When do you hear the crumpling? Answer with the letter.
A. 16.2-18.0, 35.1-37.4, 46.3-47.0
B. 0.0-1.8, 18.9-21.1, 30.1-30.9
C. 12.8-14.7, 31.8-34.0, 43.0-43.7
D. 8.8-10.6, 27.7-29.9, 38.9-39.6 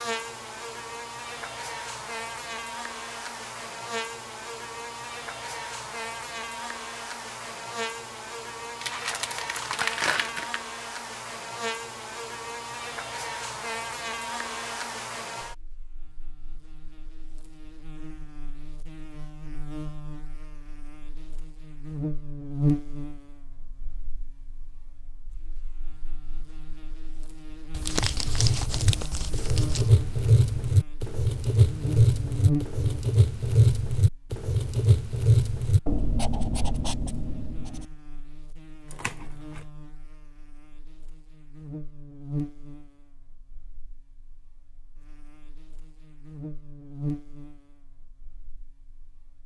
D.